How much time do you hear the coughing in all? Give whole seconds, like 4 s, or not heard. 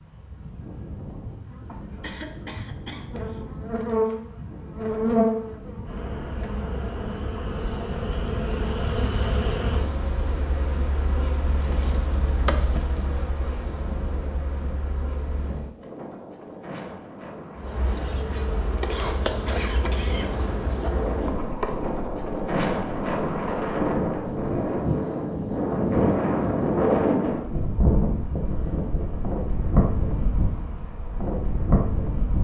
3 s.